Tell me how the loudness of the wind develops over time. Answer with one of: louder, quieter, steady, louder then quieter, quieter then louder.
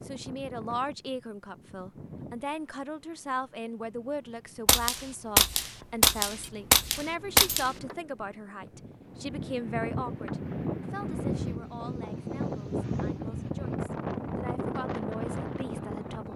quieter then louder.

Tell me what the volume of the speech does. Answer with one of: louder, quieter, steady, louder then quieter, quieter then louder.
quieter.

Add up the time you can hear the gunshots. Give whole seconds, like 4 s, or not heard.
3 s.